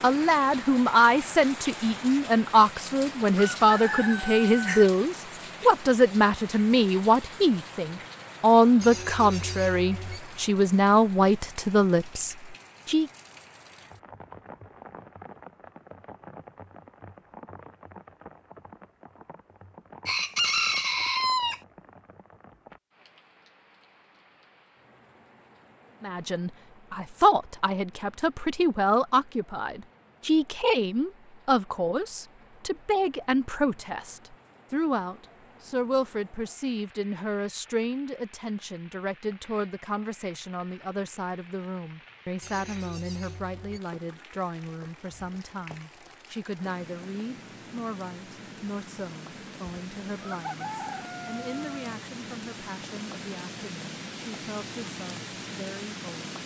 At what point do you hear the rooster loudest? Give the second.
21 s.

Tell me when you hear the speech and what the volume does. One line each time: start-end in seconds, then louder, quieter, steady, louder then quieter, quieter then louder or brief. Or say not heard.
0.0-13.1 steady
26.0-56.4 quieter.